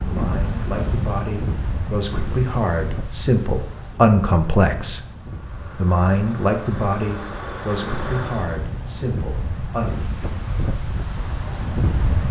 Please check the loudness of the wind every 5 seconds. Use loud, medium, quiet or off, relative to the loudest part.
loud, medium, loud.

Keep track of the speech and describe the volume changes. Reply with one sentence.
The volume of the speech goes up, then down.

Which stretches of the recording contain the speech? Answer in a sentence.
The speech can be heard from 0.1 to 5.0 s and from 5.8 to 9.9 s.